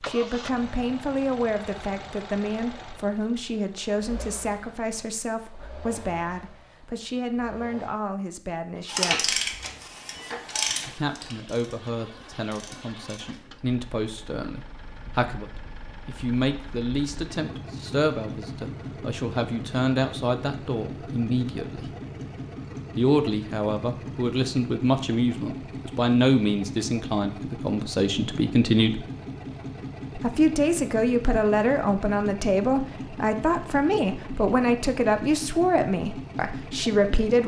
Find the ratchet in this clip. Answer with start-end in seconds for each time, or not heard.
8.8-13.4.